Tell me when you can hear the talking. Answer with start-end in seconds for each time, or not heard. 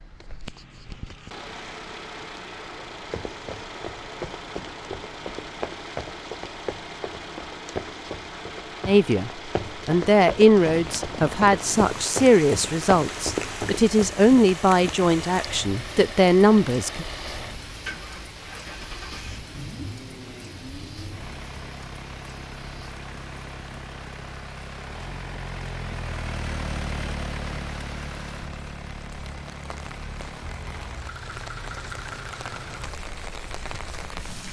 8.8-17.1.